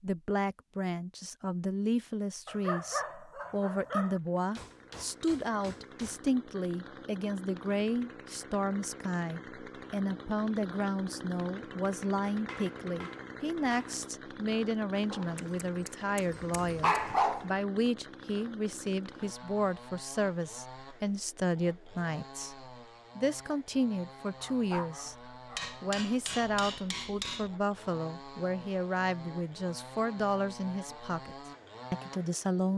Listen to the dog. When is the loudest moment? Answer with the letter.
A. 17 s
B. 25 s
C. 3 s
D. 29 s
A.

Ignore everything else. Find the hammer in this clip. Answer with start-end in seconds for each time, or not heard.
4.5-6.2, 12.3-14.1, 25.6-27.5.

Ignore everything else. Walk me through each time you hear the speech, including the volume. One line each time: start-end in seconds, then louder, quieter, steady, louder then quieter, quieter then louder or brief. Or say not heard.
0.0-32.7 steady.